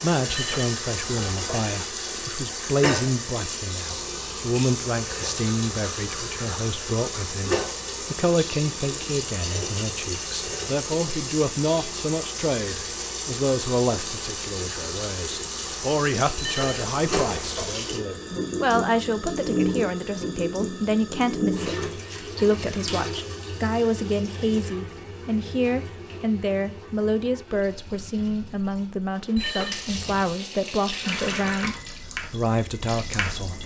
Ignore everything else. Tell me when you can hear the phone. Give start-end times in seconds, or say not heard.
0.2-1.6, 16.4-17.8, 29.4-30.1.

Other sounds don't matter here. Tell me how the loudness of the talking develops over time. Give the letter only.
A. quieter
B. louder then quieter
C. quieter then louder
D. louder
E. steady
E.